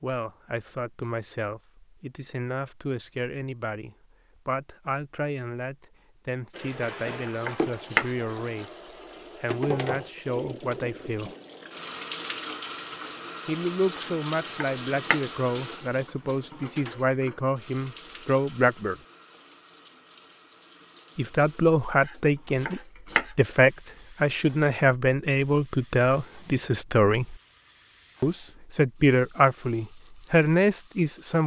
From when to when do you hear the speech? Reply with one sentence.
The speech can be heard from 0.0 to 8.7 s, from 9.4 to 11.3 s, from 13.4 to 18.9 s, from 21.1 to 27.4 s and from 28.2 to 31.4 s.